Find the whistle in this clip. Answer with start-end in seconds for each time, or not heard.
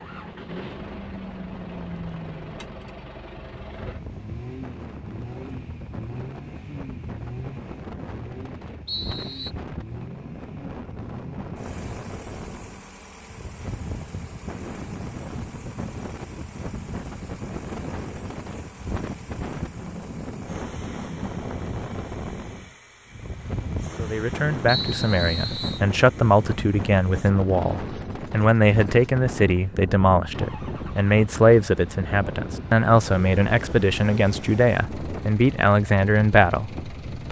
8.8-9.6, 24.6-25.8.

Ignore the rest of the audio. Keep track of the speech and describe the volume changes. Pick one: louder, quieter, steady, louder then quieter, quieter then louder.
steady.